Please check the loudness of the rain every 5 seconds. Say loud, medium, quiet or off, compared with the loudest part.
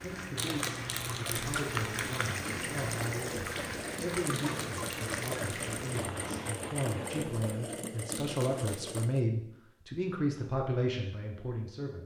loud, loud, off.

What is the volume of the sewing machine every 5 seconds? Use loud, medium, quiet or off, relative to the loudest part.
loud, loud, off.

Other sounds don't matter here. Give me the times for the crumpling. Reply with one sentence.
The crumpling can be heard from 0.3 to 2.4 s, from 4.3 to 6.0 s and from 8.1 to 8.9 s.